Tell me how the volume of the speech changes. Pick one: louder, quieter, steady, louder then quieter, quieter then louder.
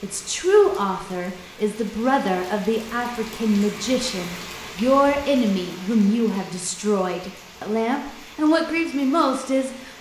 steady.